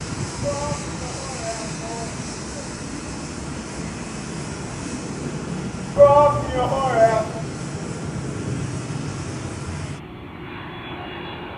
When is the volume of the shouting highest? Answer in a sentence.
The volume of the shouting peaks at 6 seconds.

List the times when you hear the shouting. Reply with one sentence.
The shouting can be heard from 0.4 to 2.7 s and from 6.0 to 7.4 s.